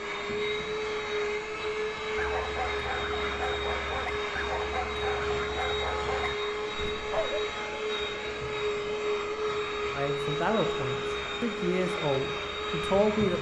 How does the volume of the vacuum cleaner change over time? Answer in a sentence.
The loudness of the vacuum cleaner stays about the same.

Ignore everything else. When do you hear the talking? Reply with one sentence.
You can hear the talking from 9.9 to 13.3 s.